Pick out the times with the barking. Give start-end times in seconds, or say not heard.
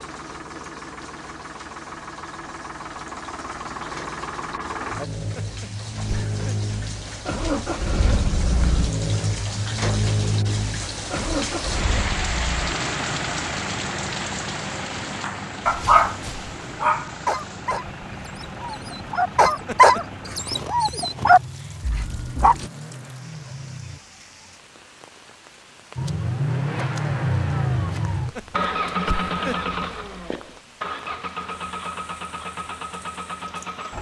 15.7-22.6.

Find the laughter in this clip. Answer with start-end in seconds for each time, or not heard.
5.2-6.5, 19.4-20.0, 28.1-29.8.